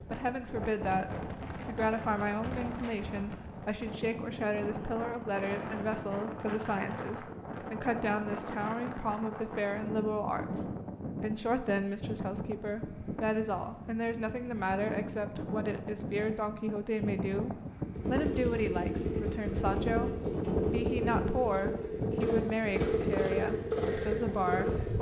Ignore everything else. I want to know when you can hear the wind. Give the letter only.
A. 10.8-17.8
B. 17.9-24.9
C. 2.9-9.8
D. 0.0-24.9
D.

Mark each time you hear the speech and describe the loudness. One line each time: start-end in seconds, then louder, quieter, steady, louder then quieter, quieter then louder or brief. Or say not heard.
0.0-24.9 steady.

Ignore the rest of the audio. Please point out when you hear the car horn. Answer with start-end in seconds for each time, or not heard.
not heard.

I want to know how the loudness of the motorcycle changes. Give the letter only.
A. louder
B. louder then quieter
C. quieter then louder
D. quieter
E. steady
E.